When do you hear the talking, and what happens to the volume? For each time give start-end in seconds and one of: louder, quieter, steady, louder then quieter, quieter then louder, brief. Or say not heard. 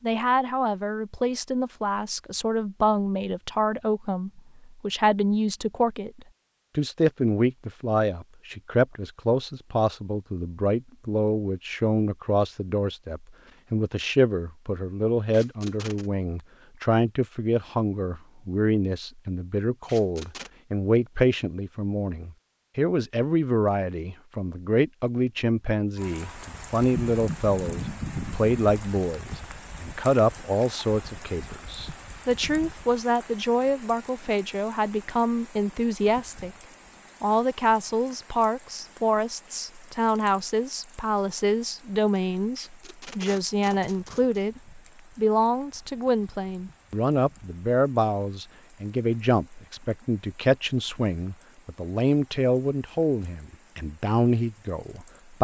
0.0-36.5 steady
37.2-55.4 steady.